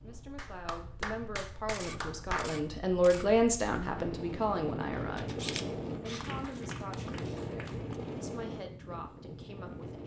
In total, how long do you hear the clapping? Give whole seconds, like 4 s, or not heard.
4 s.